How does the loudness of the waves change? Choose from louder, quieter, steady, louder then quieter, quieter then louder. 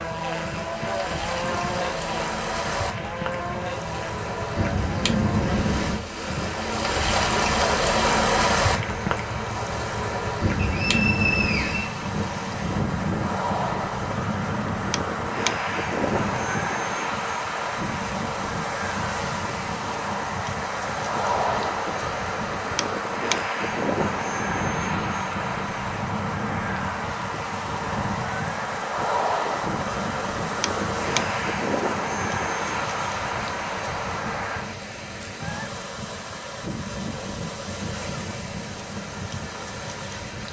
quieter.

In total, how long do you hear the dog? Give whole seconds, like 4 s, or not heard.
not heard.